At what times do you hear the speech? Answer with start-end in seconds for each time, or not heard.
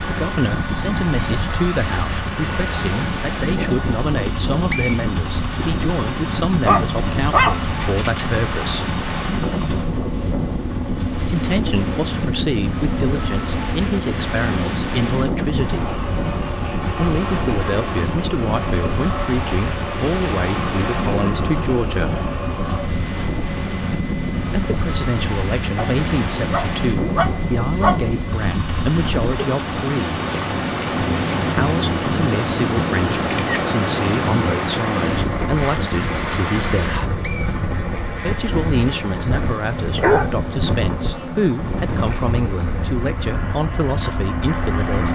0.0-8.9, 11.2-15.9, 16.9-22.2, 24.4-30.2, 31.5-37.0, 38.2-45.1.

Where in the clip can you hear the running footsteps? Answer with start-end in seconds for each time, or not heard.
not heard.